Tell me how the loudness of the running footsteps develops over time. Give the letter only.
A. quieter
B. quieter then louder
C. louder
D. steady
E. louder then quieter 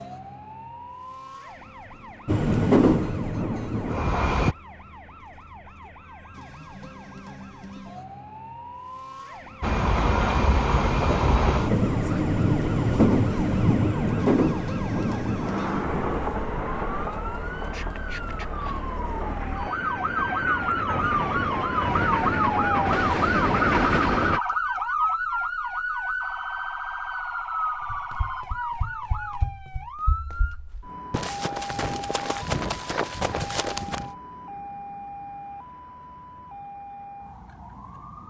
C.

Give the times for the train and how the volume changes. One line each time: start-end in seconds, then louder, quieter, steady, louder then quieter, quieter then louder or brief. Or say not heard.
2.2-4.5 brief
9.6-24.4 quieter then louder.